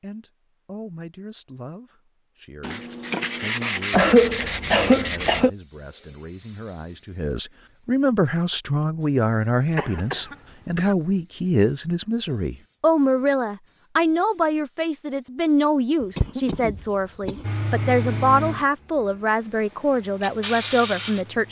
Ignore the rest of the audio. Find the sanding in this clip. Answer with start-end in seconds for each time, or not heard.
2.6-5.5.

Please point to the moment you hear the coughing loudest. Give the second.
4 s.